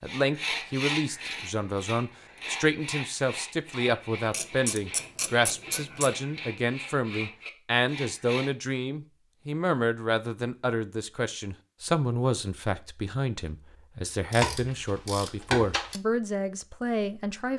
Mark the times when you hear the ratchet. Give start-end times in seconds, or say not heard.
4.3-6.1, 14.3-16.0.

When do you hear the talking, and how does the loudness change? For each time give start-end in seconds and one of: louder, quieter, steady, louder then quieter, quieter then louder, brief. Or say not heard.
0.0-17.5 steady.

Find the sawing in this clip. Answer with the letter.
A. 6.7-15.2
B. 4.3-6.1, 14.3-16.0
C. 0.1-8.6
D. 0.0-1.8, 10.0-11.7
C.